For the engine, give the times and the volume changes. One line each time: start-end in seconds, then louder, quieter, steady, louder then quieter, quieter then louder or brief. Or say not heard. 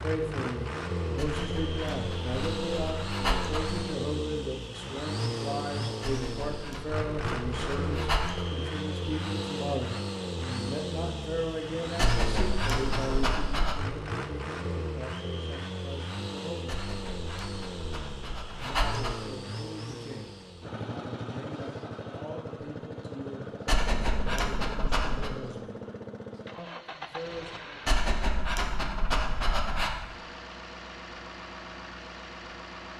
0.0-32.9 quieter.